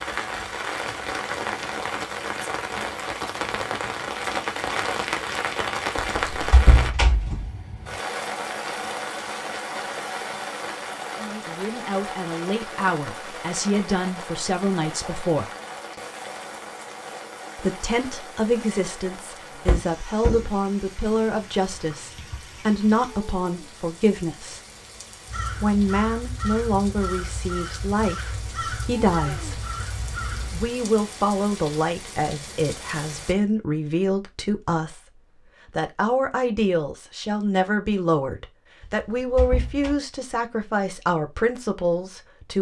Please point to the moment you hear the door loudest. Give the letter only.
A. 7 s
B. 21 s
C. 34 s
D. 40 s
A.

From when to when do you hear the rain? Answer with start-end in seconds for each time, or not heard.
0.0-33.4.